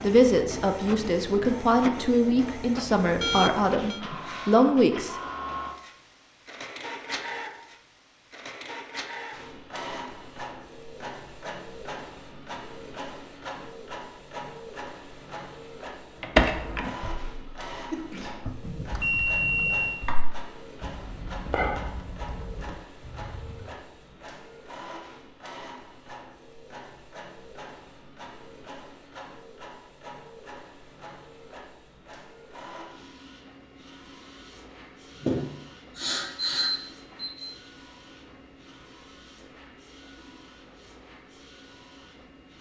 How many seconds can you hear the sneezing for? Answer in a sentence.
The sneezing can be heard for 2 seconds in total.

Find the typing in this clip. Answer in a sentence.
The typing can be heard from 16.2 to 23.8 s.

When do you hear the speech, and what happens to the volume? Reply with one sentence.
The speech can be heard from 0.0 to 5.2 s, getting louder.